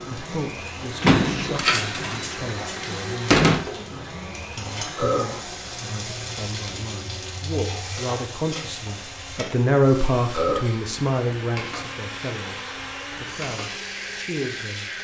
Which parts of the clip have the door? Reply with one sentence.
The door can be heard from 1.0 to 3.6 s.